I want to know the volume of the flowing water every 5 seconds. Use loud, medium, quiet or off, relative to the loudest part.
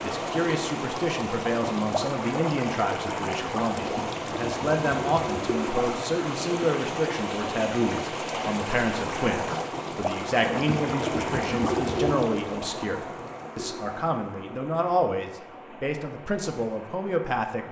loud, loud, loud, quiet.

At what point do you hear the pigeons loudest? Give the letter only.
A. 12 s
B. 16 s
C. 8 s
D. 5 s
A.